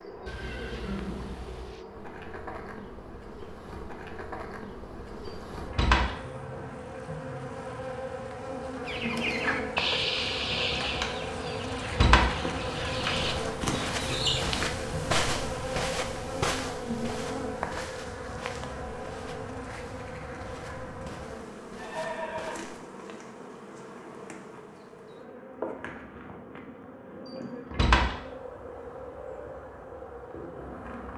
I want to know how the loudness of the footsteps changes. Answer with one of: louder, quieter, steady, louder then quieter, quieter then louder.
quieter.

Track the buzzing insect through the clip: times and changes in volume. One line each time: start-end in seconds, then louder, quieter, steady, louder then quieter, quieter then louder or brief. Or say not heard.
0.0-31.1 louder then quieter.